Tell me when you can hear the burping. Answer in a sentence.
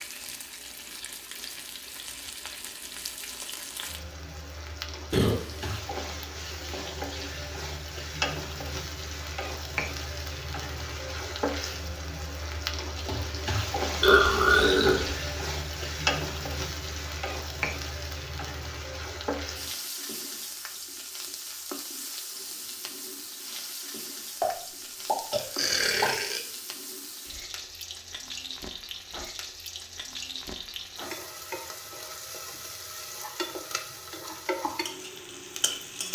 The burping can be heard from 5.1 to 5.7 s, from 14.0 to 15.2 s and from 24.4 to 26.4 s.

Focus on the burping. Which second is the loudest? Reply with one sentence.
The volume of the burping peaks at 14 seconds.